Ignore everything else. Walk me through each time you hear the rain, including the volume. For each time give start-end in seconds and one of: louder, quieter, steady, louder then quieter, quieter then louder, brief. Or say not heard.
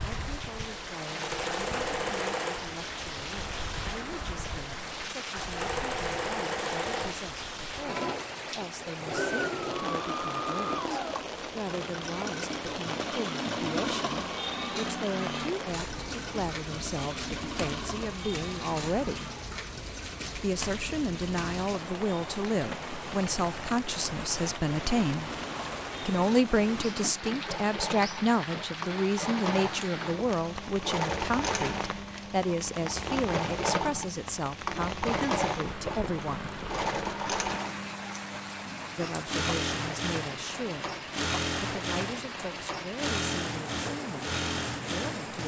0.0-45.4 steady.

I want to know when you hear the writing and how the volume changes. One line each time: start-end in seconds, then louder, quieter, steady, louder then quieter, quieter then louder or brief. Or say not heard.
not heard.